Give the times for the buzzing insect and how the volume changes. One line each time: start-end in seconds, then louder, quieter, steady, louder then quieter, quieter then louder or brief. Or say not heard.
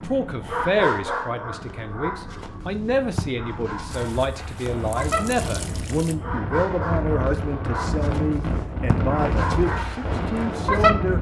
not heard.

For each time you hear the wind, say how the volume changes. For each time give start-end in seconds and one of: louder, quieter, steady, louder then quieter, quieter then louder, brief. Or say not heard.
0.0-11.1 louder.